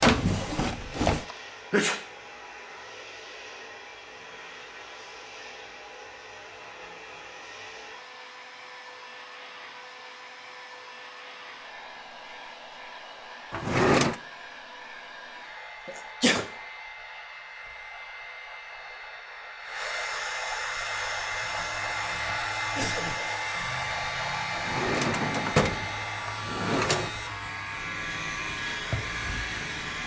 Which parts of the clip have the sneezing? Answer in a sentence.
You can hear the sneezing from 1.3 to 2.0 s, from 15.8 to 16.4 s and from 22.2 to 23.3 s.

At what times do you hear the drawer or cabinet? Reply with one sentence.
The drawer or cabinet can be heard from 0.0 to 1.2 s, from 13.5 to 14.2 s and from 24.6 to 27.1 s.